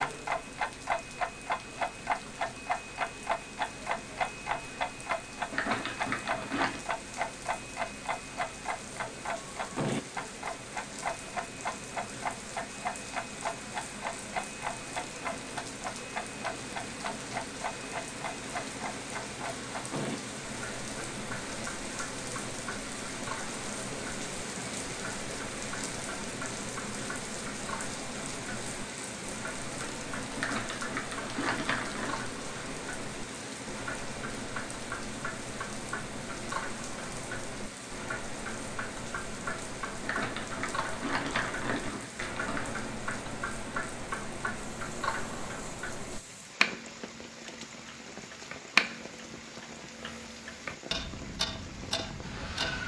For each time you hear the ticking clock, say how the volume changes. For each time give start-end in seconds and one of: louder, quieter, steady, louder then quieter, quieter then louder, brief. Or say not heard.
0.0-52.8 quieter then louder.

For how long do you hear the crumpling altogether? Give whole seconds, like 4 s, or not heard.
6 s.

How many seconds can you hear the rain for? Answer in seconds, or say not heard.
53 s.